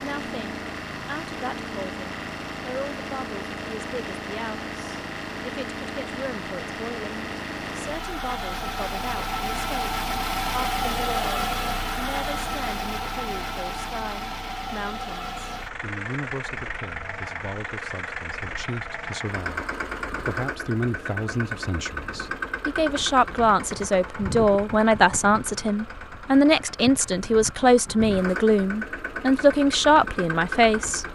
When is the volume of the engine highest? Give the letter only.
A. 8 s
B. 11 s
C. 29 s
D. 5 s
B.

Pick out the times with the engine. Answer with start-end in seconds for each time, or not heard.
0.0-31.0.